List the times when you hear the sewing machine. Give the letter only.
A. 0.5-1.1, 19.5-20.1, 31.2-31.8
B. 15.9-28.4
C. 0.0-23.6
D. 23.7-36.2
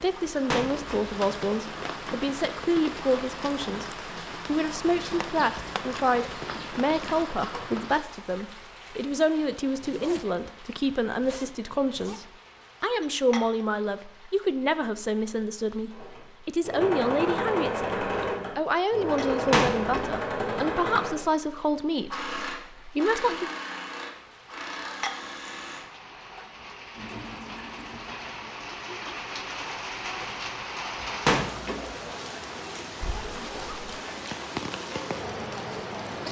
B.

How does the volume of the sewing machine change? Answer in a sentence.
The loudness of the sewing machine goes down.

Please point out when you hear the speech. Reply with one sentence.
The speech can be heard from 0.0 to 23.6 s.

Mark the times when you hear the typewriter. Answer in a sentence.
You can't hear the typewriter here.